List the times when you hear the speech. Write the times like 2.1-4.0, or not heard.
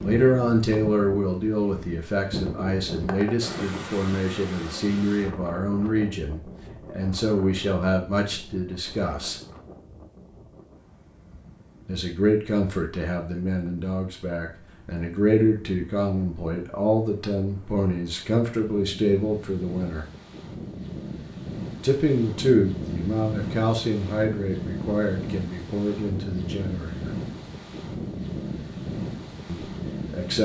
0.0-9.3, 11.8-20.1, 21.8-27.1, 29.4-30.3.